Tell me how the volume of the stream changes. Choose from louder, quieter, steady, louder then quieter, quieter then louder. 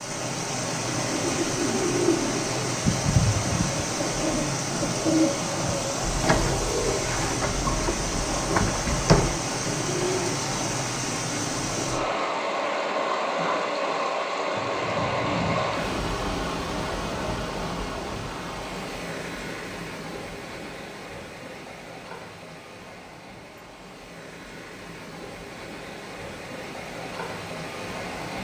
quieter.